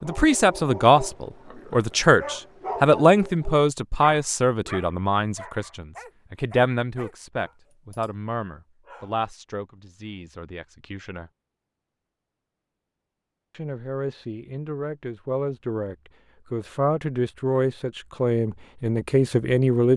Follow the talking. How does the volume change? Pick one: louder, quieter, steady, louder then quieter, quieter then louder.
quieter then louder.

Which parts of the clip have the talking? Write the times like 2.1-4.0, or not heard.
0.0-11.3, 13.5-19.9.